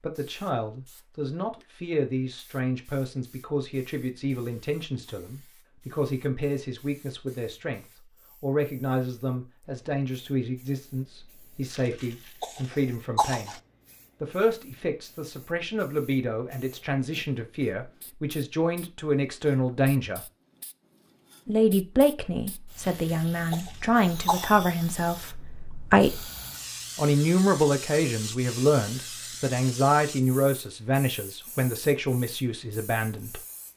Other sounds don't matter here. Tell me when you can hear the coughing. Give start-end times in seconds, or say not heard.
11.7-13.6, 22.8-24.5.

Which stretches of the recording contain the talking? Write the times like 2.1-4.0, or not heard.
0.0-13.6, 14.2-20.2, 21.4-26.2, 26.9-33.4.